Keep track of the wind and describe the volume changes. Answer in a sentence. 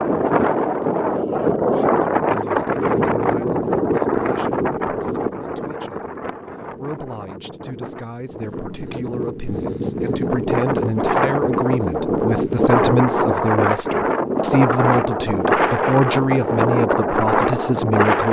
The volume of the wind goes down, then up.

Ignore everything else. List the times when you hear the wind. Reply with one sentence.
You can hear the wind from 0.0 to 18.2 s.